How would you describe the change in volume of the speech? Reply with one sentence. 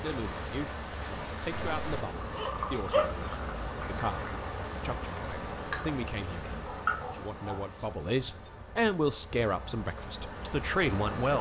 The volume of the speech goes up.